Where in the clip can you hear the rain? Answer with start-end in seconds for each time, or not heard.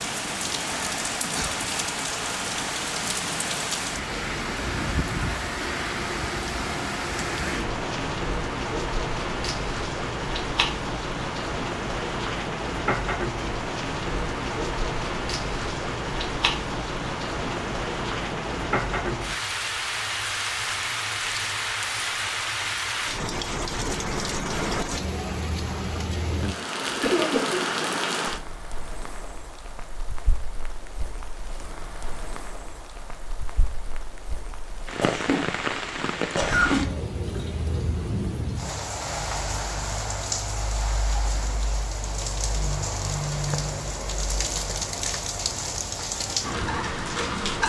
0.0-47.6.